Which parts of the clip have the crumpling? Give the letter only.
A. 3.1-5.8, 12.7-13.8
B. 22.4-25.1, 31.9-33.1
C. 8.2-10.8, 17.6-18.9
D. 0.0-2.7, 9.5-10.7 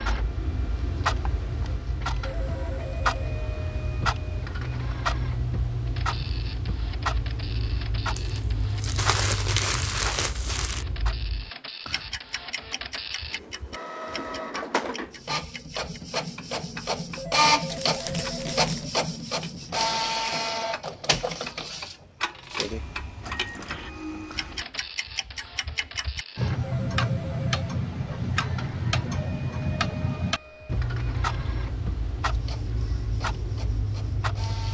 C.